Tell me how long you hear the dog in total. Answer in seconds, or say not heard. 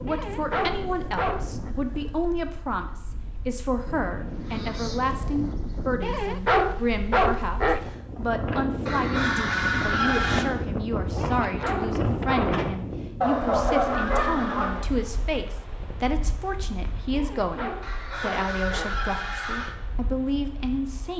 7 s.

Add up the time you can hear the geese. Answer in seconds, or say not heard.
9 s.